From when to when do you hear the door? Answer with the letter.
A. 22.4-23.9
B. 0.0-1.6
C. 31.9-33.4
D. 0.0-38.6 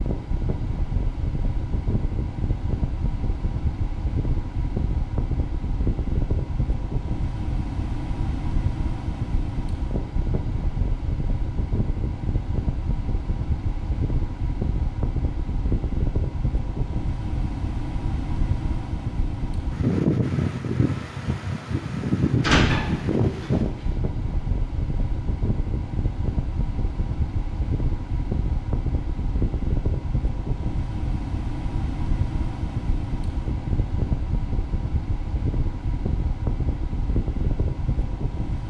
A.